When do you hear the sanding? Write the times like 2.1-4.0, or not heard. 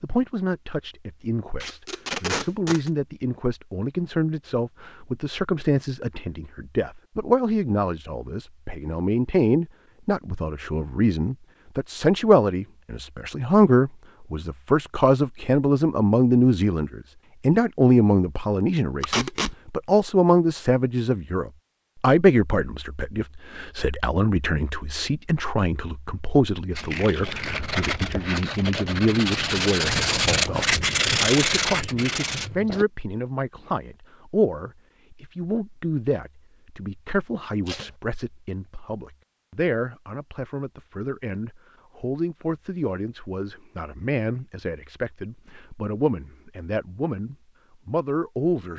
26.7-32.9.